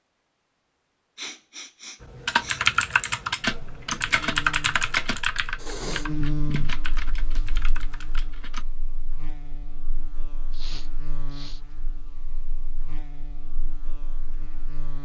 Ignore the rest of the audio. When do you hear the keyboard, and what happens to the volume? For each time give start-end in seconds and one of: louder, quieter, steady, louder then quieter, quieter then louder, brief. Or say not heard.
2.0-8.7 quieter.